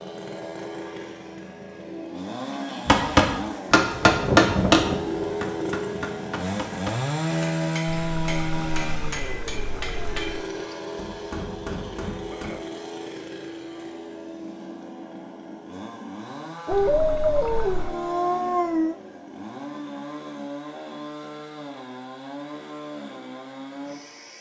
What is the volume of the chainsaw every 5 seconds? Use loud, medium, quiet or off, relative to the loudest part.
medium, loud, medium, medium, medium.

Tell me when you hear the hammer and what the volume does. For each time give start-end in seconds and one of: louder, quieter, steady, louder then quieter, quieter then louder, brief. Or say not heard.
2.9-12.5 quieter.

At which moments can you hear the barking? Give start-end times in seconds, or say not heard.
16.6-19.0.